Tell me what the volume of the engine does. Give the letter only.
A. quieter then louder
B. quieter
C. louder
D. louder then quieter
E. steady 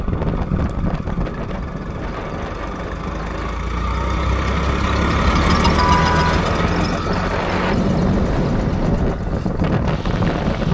D.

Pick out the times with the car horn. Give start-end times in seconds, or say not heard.
5.8-6.4.